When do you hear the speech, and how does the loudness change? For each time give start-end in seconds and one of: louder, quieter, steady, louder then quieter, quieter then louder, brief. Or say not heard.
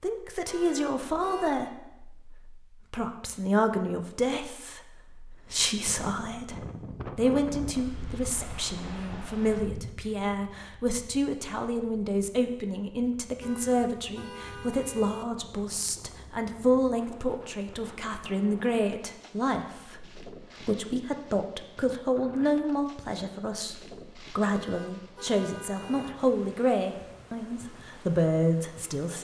0.0-29.1 steady.